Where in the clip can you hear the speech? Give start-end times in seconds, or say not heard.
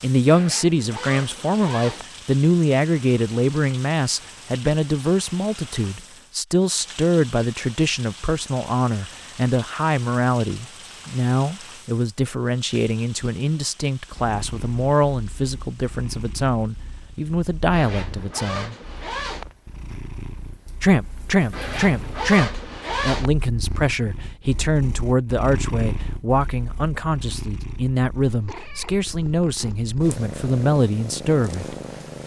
0.0-18.8, 20.8-31.8.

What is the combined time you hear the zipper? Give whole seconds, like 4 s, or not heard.
5 s.